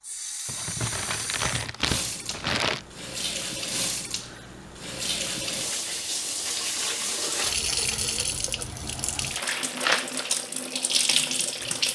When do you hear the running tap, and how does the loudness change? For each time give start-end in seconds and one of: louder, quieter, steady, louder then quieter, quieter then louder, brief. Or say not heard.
0.0-11.9 louder.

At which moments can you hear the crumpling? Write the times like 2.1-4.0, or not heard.
0.5-2.9, 9.3-10.4.